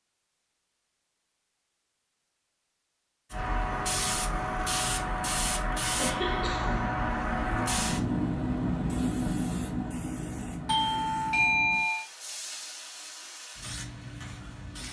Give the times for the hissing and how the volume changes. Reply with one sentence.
You can hear the hissing from 3.3 to 14.8 s, getting quieter.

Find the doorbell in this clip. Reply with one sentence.
The doorbell can be heard from 10.7 to 12.1 s.